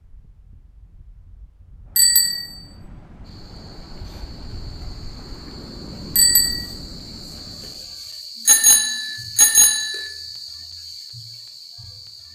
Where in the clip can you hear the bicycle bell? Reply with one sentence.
The bicycle bell can be heard from 1.9 to 2.5 s, from 6.2 to 6.7 s and from 8.4 to 10.1 s.